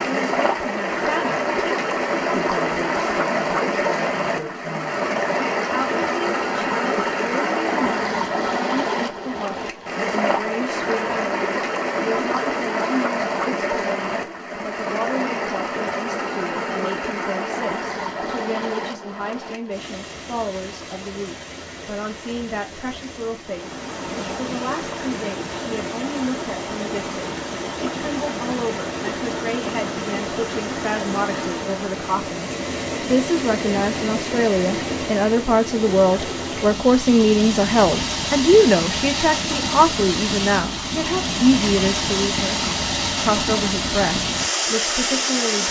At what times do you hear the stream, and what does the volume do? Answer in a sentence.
You can hear the stream from 0.0 to 45.6 s, getting quieter then louder.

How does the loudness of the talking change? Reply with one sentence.
The volume of the talking goes up.